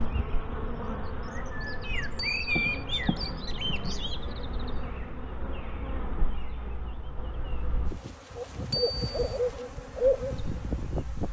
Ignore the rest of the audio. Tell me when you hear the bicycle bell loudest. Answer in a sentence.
The loudest moment of the bicycle bell is at 9 seconds.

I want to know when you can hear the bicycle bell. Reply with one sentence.
You can hear the bicycle bell from 2.1 to 2.9 s and from 8.7 to 9.4 s.